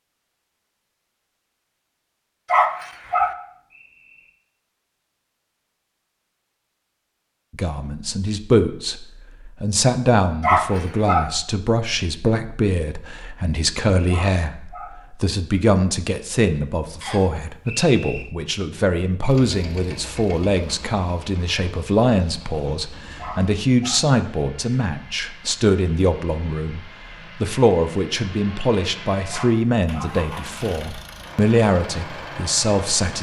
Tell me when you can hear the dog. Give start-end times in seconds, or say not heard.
2.5-3.4, 10.4-11.3, 14.1-14.9, 23.1-24.1, 29.3-30.1.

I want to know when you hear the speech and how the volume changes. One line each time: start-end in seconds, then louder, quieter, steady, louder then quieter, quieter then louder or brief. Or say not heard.
7.5-33.1 steady.